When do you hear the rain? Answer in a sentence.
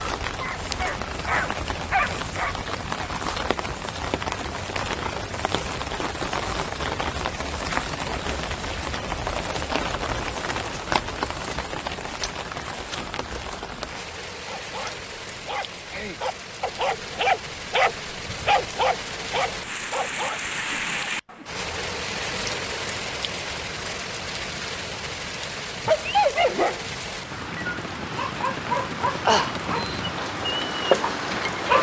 The rain can be heard from 0.0 to 31.7 s.